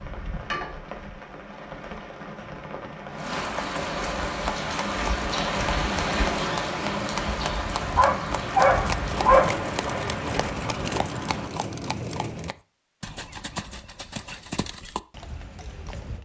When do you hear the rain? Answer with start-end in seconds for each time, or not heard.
0.0-11.5.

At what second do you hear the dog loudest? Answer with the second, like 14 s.
9 s.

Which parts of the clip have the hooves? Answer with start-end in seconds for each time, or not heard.
4.2-16.1.